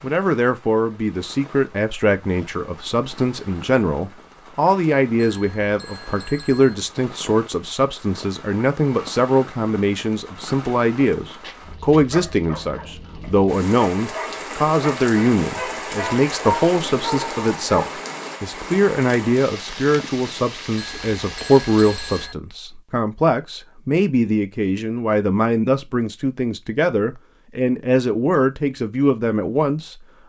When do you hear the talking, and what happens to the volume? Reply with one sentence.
The talking can be heard from 0.0 to 29.9 s, at a steady volume.